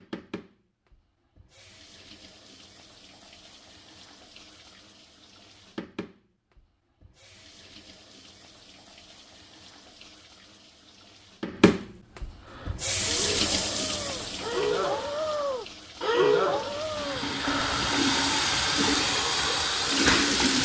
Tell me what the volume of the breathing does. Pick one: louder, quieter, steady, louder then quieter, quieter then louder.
louder then quieter.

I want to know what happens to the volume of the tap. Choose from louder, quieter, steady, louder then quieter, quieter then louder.
louder.